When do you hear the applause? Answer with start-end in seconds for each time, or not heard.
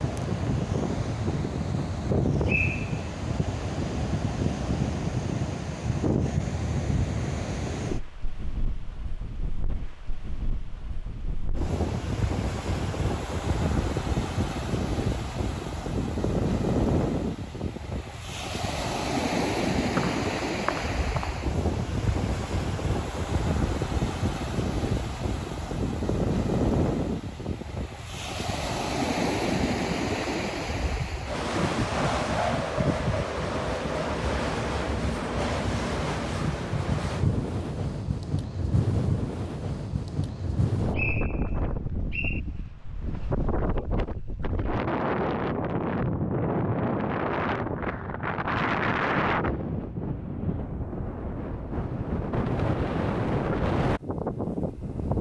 not heard.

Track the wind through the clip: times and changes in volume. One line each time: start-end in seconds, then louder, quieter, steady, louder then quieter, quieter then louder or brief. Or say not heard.
0.0-55.1 steady.